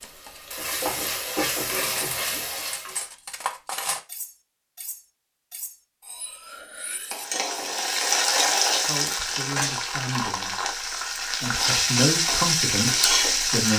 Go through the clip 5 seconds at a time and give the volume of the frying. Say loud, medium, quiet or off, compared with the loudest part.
medium, loud, loud.